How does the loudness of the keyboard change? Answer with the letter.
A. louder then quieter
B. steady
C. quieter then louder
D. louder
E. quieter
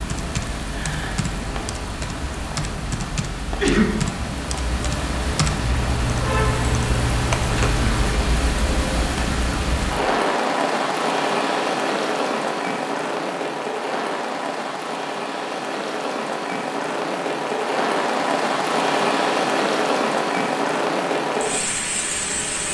D.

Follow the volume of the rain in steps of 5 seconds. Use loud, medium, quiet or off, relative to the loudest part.
medium, loud, loud, loud, loud.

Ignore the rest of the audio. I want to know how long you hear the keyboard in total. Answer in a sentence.
You can hear the keyboard for 8 seconds altogether.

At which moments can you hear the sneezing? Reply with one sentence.
The sneezing can be heard from 3.5 to 3.9 s.